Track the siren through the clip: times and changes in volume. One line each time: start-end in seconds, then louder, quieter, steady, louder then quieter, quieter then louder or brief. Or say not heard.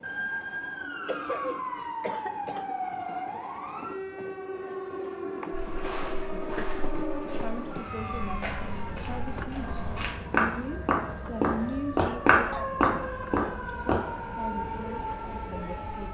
0.0-16.0 quieter then louder.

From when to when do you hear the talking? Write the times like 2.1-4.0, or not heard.
6.1-16.0.